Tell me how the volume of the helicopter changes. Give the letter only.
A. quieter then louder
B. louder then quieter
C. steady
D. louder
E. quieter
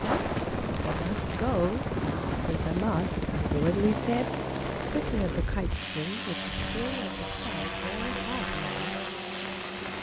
C.